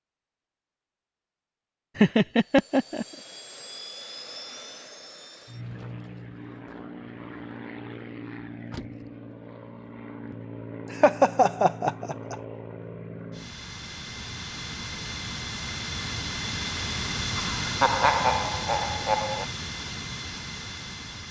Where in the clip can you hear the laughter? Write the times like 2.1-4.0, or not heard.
1.9-3.0, 10.9-12.3, 17.4-19.4.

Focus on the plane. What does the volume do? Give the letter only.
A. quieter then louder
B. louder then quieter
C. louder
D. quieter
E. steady
C.